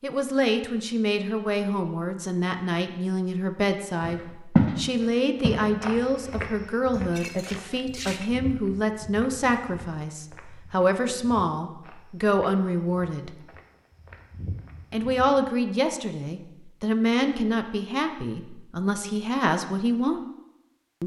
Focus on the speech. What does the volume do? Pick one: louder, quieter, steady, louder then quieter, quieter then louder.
steady.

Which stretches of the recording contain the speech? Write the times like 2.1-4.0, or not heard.
0.0-13.4, 14.9-20.2.